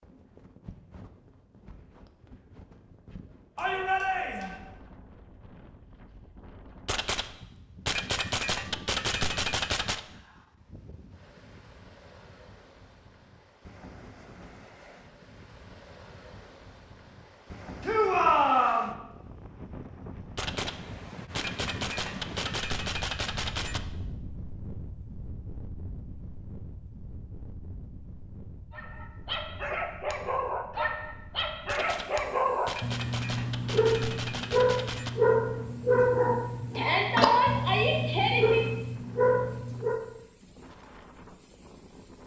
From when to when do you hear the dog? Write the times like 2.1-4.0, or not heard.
28.7-40.0.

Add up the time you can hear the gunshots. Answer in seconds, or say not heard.
10 s.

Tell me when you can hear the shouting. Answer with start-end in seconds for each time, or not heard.
3.5-4.5, 17.8-18.9, 36.8-38.6.